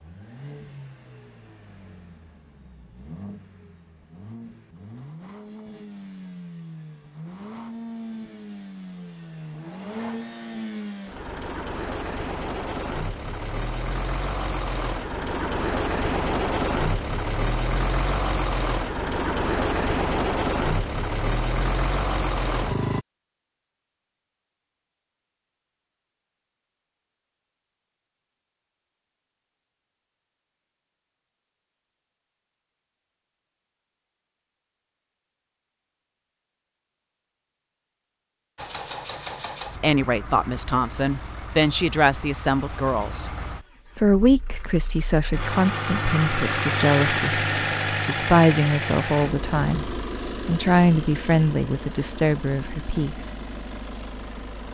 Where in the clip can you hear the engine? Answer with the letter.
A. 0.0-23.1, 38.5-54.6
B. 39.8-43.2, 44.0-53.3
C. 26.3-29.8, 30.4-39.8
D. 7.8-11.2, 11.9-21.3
A.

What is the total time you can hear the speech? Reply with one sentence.
The speech can be heard for 13 seconds in total.